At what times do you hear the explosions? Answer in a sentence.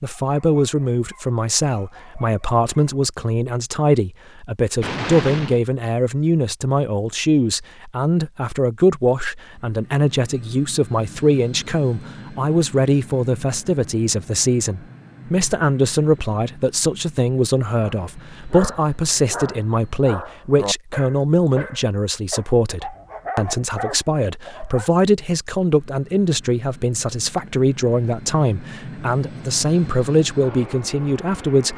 The explosions can be heard from 4.8 to 5.6 s.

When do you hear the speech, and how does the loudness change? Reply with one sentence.
You can hear the speech from 0.0 to 31.7 s, at a steady volume.